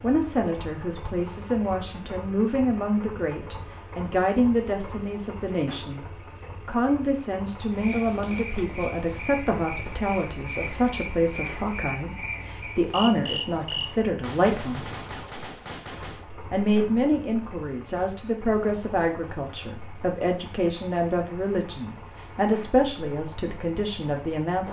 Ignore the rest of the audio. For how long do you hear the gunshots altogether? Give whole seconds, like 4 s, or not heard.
2 s.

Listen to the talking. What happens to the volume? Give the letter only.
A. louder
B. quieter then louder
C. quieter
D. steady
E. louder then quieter
D.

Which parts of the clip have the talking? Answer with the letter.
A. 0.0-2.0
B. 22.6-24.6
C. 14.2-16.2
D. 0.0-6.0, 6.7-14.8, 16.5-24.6
D.